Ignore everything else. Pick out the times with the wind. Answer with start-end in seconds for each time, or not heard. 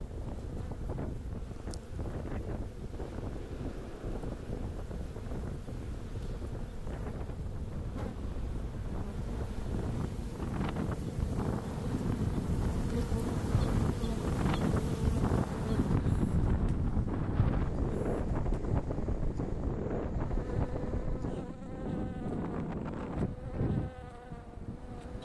0.0-25.2.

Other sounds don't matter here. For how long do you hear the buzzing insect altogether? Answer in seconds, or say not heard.
25 s.